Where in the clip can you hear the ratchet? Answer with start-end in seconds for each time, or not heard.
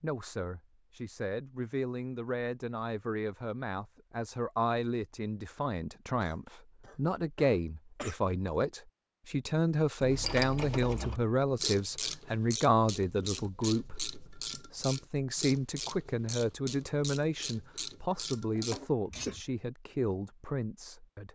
10.0-19.4.